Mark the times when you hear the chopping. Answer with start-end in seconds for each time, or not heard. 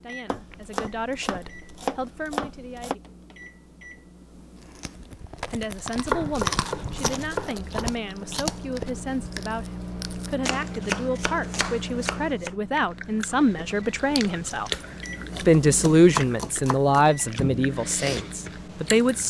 0.3-3.0, 6.0-8.0, 10.4-12.6, 14.8-17.1.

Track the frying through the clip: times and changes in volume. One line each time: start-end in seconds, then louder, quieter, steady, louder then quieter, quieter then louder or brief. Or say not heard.
not heard.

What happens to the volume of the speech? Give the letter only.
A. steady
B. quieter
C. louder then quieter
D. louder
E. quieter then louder
D.